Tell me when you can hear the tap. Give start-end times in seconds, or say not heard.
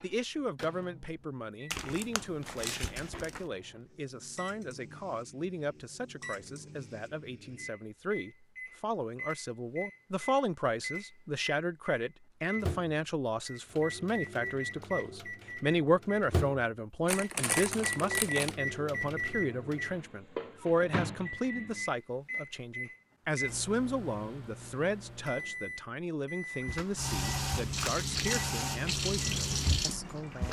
26.6-30.4.